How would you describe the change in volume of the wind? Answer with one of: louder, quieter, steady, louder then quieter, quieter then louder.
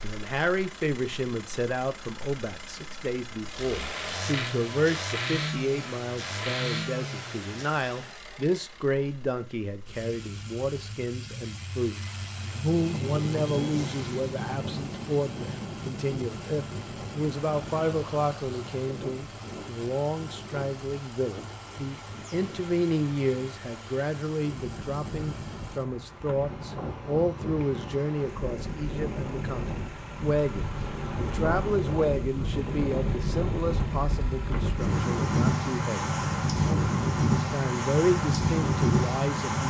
quieter then louder.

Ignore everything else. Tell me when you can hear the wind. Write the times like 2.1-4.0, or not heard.
12.7-39.6.